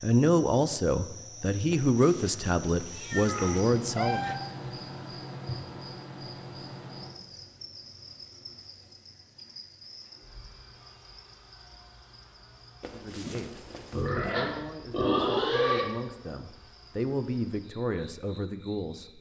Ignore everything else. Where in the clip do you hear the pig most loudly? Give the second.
15 s.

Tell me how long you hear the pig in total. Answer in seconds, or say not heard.
2 s.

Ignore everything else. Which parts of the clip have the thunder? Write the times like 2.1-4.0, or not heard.
not heard.